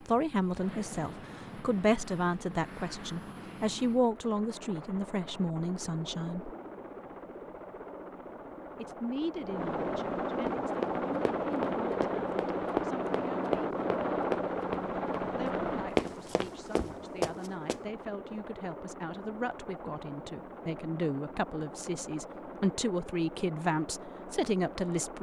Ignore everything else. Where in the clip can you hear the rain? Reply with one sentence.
You can't hear the rain here.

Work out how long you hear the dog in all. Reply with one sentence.
You can't hear the dog here.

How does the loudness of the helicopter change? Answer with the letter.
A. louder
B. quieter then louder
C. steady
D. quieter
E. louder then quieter
E.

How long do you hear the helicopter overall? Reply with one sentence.
You can hear the helicopter for 25 seconds altogether.